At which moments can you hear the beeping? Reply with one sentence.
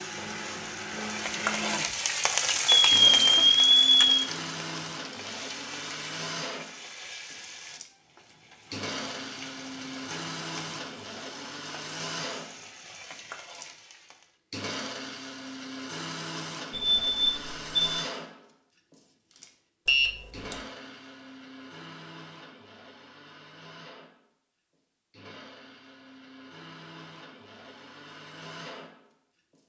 The beeping can be heard from 2.9 to 4.1 s, from 16.7 to 18.1 s and from 19.9 to 20.6 s.